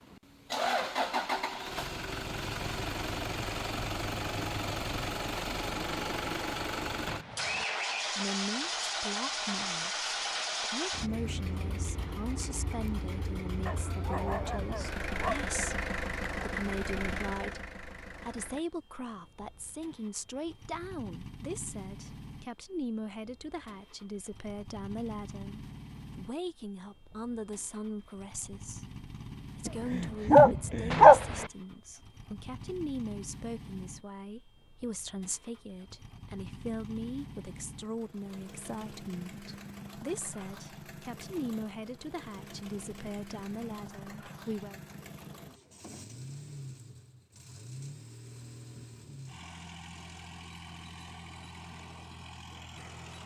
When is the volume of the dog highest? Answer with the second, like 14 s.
31 s.